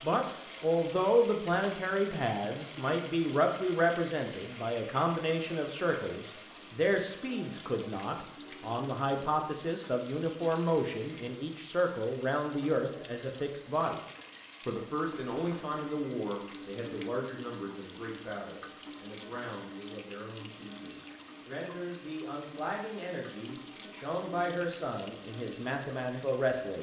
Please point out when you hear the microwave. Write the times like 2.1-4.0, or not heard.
not heard.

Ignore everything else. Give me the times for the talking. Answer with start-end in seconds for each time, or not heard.
0.0-14.0, 14.7-26.7.